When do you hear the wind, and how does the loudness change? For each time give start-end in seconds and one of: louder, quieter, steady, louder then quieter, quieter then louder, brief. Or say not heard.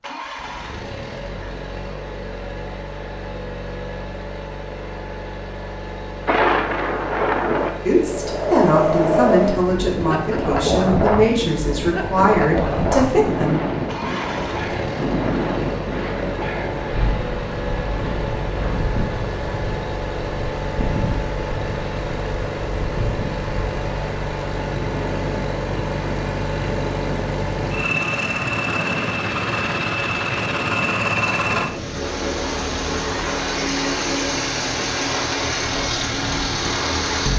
6.2-37.3 quieter.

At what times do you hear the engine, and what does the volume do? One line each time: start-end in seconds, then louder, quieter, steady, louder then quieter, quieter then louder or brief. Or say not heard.
0.0-37.3 louder.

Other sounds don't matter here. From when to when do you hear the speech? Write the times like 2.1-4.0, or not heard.
7.8-13.6.